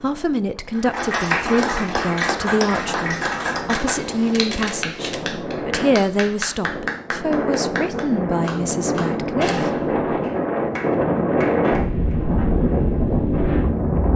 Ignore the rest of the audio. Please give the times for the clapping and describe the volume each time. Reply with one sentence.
The clapping can be heard from 0.8 to 12.2 s, getting quieter.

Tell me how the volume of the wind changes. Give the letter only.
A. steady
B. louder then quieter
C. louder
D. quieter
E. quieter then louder
C.